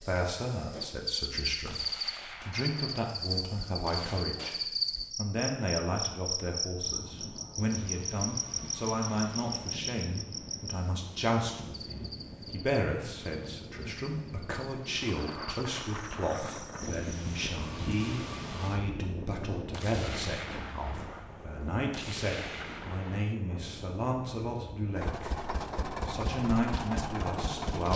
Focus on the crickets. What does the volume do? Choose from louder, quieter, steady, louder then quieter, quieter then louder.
quieter.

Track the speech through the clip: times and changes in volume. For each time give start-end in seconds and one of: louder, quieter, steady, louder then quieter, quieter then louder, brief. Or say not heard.
0.0-25.3 steady
26.1-27.9 brief.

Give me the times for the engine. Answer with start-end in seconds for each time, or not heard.
24.9-27.9.